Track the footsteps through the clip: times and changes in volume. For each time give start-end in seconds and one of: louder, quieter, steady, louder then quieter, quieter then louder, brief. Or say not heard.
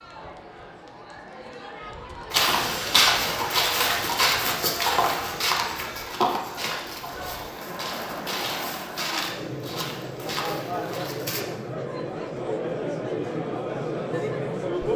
2.3-11.4 quieter.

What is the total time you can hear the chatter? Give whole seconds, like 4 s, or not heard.
15 s.